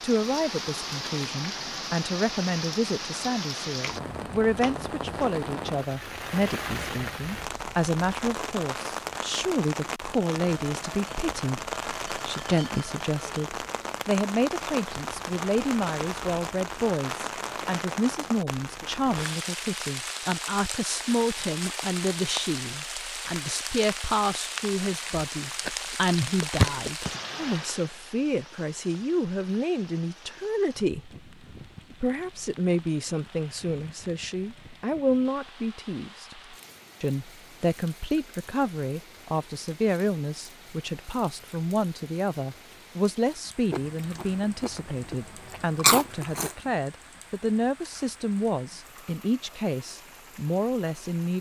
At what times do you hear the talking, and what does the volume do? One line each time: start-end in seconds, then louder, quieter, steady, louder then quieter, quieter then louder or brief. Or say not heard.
0.0-31.1 steady
31.9-51.3 steady.